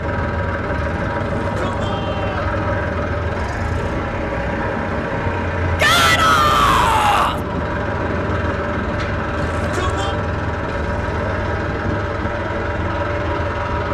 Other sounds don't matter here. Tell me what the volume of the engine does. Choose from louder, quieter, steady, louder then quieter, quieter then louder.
steady.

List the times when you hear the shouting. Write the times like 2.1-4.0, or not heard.
1.2-2.5, 5.8-7.4, 9.3-10.2.